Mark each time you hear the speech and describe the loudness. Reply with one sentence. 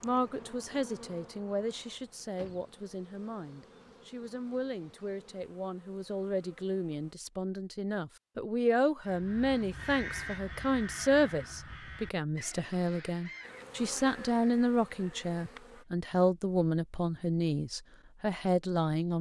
You can hear the speech from 0.0 to 19.1 s, getting louder.